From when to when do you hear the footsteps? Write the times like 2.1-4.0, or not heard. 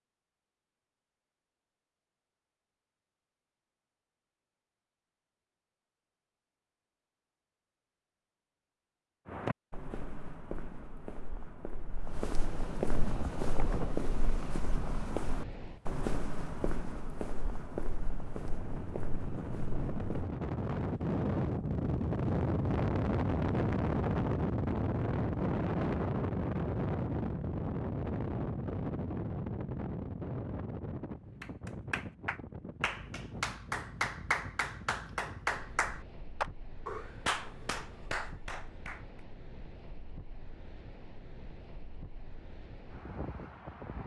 9.2-20.2.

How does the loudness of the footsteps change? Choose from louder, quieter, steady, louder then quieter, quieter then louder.
louder then quieter.